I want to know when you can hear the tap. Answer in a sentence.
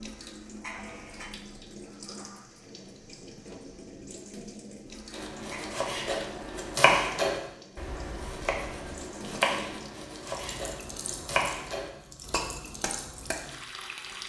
You can hear the tap from 0.0 to 14.2 s.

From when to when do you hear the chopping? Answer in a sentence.
The chopping can be heard from 5.1 to 13.3 s.